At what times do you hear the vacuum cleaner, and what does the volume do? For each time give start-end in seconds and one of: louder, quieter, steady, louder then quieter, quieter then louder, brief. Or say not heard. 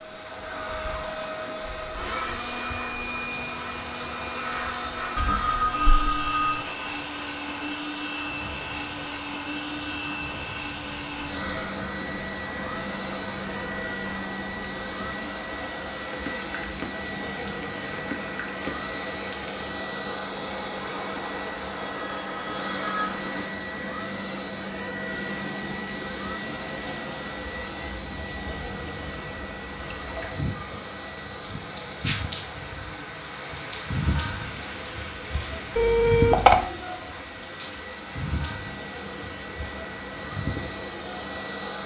0.0-41.8 quieter.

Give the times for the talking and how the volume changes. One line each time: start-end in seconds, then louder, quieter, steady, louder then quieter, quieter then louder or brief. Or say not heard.
not heard.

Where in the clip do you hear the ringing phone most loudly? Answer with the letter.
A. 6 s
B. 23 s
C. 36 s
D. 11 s
C.